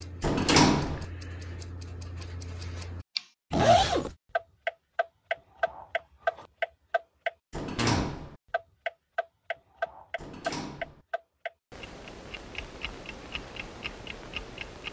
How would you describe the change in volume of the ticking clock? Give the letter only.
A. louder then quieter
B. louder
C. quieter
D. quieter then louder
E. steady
A.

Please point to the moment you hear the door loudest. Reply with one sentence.
The volume of the door peaks at 1 second.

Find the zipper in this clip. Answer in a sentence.
The zipper can be heard from 3.5 to 4.1 s.